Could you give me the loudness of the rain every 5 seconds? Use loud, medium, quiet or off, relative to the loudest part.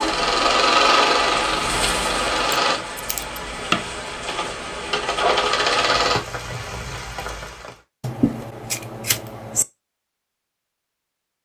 loud, loud, off.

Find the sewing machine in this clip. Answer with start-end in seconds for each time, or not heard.
0.0-2.8, 4.2-6.2.